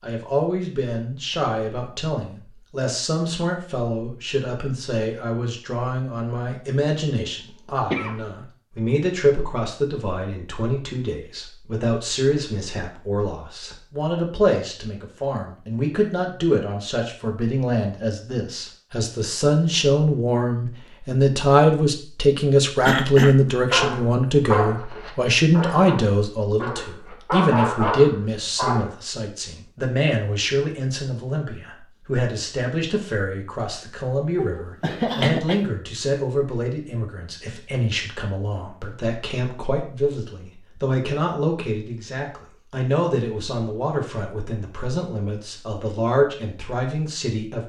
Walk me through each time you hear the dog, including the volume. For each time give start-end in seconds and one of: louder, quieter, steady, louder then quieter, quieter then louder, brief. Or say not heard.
23.7-28.9 quieter then louder.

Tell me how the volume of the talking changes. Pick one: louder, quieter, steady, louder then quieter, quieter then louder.
louder then quieter.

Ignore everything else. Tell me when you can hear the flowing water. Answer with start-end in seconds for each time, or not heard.
not heard.